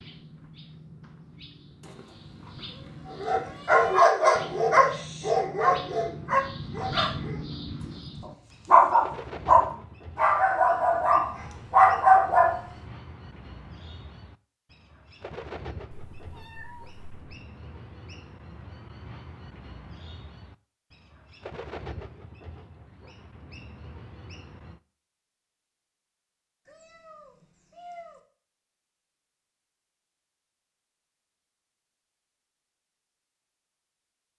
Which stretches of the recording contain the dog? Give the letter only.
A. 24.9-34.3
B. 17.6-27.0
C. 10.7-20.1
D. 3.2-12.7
D.